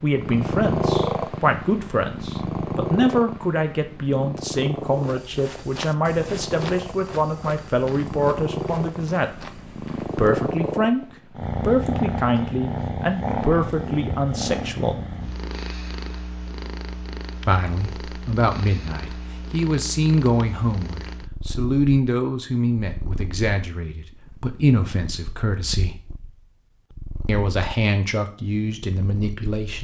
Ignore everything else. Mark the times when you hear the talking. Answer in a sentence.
The talking can be heard from 0.0 to 15.0 s, from 17.4 to 26.0 s and from 27.2 to 29.7 s.